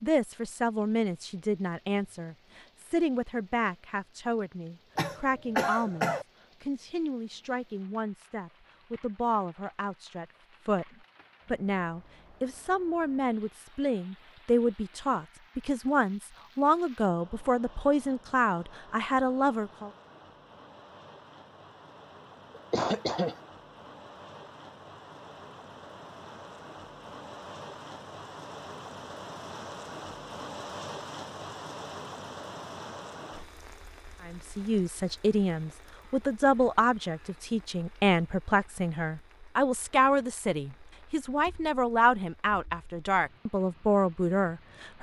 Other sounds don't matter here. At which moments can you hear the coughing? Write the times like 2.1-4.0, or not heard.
5.0-6.2, 22.6-23.4.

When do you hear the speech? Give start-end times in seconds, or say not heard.
0.0-10.8, 11.4-19.9, 34.2-44.9.